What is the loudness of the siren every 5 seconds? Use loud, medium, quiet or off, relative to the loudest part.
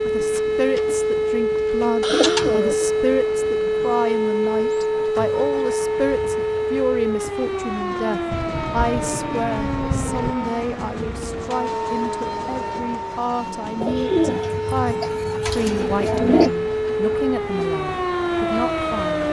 loud, loud, medium, loud.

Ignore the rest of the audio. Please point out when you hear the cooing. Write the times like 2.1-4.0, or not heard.
2.0-2.9, 8.3-10.3, 13.8-16.5.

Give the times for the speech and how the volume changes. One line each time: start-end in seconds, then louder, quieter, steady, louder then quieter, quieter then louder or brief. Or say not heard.
0.0-19.2 steady.